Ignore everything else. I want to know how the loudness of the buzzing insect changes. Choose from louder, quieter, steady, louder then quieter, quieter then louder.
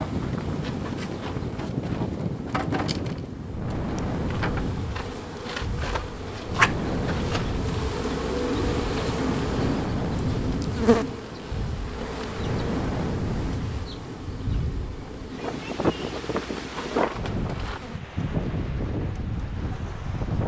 louder then quieter.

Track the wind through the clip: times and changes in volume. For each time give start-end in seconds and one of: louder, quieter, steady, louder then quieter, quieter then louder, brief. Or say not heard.
0.0-20.4 steady.